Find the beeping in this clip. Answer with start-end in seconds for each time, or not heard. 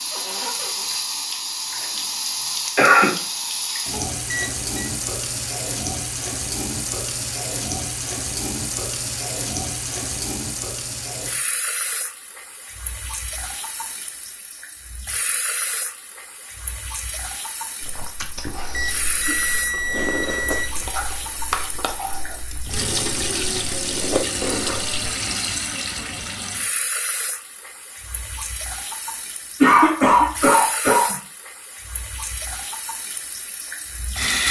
4.2-4.9, 18.7-20.9.